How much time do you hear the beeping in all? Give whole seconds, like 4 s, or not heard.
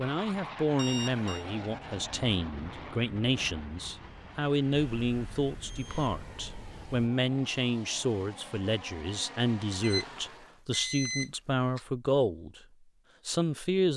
5 s.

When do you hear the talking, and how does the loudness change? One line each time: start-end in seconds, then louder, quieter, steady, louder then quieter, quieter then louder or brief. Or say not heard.
0.0-12.6 steady
13.2-13.9 brief.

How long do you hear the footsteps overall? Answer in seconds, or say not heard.
not heard.